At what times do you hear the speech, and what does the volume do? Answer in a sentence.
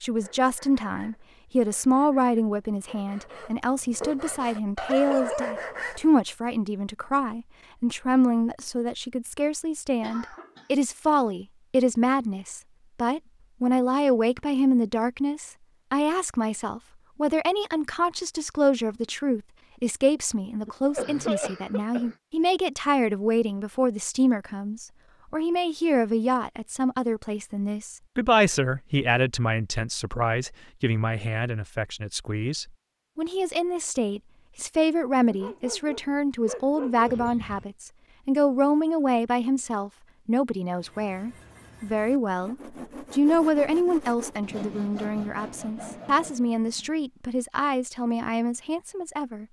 You can hear the speech from 0.0 to 49.4 s, at a steady volume.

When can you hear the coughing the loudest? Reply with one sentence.
The volume of the coughing peaks at 21 seconds.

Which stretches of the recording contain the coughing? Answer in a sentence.
You can hear the coughing from 10.0 to 10.7 s, from 20.6 to 22.1 s and from 37.0 to 37.6 s.